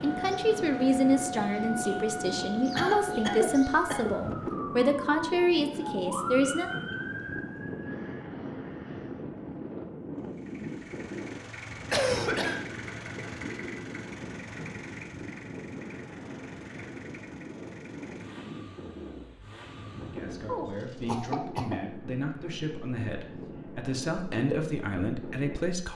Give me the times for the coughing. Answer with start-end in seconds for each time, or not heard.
2.8-4.2, 11.9-12.7, 20.4-21.8.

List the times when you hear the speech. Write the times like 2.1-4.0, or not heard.
0.0-6.7, 20.0-25.9.